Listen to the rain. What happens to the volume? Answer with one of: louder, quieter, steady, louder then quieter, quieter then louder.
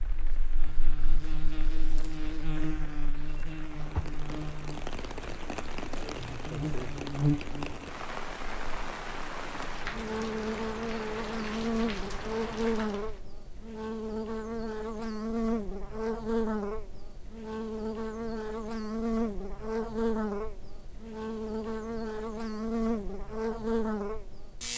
louder.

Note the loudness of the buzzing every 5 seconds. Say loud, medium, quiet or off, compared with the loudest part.
medium, loud, loud, loud, loud.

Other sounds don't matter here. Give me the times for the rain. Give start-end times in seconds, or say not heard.
0.0-13.2.